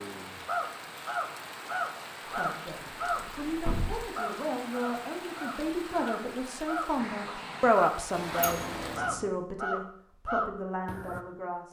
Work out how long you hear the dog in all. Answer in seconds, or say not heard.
not heard.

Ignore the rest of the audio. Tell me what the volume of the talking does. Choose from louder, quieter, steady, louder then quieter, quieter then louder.
louder then quieter.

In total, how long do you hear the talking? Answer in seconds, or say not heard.
9 s.